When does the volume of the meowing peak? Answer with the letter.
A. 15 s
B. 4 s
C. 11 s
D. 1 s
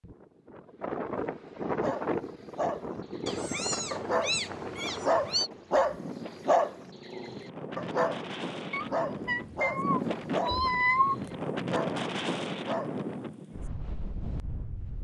C.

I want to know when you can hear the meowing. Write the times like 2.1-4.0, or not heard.
3.2-5.5, 8.7-11.2.